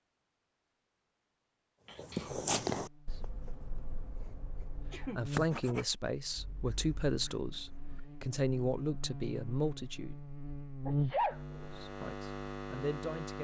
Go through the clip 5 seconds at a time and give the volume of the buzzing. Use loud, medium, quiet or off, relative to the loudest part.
quiet, medium, loud.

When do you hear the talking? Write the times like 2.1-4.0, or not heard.
5.0-10.2, 11.5-13.3.